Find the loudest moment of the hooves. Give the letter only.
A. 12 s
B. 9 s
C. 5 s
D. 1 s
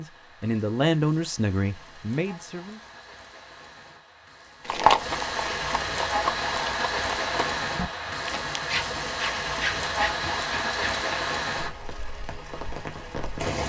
C.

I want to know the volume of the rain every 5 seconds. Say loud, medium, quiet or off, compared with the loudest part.
quiet, loud, loud.